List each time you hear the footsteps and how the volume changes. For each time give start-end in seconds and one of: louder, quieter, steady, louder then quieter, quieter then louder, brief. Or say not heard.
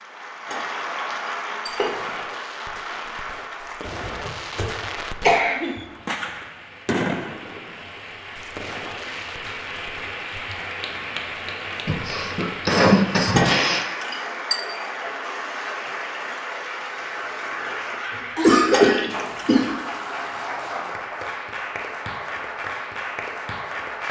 not heard.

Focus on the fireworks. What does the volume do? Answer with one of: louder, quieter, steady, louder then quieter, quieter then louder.
louder then quieter.